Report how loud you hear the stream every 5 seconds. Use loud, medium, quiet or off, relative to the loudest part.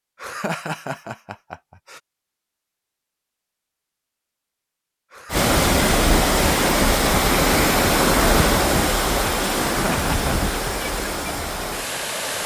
off, loud, medium.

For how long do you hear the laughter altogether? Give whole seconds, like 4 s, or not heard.
3 s.